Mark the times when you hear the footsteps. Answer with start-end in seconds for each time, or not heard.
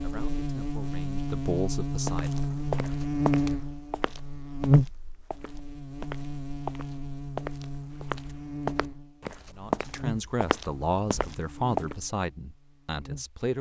2.0-11.9.